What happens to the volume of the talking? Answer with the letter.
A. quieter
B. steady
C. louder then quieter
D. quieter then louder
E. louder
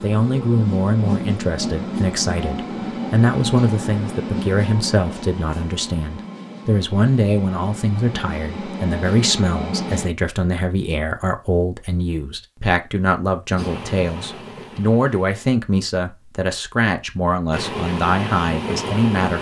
B.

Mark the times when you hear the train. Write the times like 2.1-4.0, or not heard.
0.0-10.1, 13.6-15.6, 17.5-19.3.